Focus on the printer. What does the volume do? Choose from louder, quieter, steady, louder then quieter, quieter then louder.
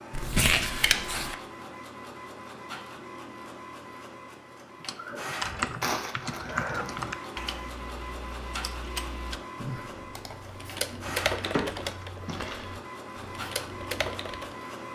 steady.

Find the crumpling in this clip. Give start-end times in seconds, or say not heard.
0.1-1.4, 5.8-6.8, 10.8-12.7.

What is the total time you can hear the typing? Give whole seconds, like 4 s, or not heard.
10 s.